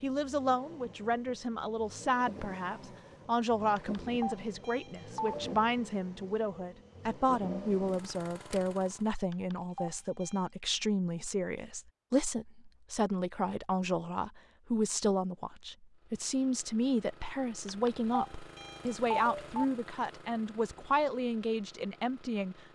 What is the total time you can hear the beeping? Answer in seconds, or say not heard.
5 s.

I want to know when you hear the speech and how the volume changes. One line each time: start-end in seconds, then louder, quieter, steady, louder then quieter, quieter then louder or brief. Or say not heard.
0.0-22.7 steady.